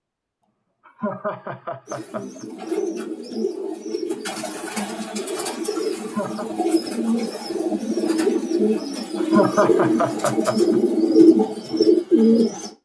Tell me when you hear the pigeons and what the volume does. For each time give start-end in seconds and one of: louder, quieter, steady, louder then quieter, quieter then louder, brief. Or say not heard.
1.9-12.7 louder.